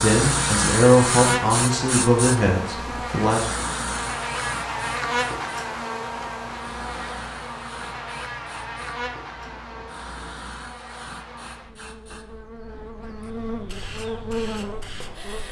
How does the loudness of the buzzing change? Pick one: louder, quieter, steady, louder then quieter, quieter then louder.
quieter then louder.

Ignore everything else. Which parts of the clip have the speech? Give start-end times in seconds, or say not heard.
0.0-3.5.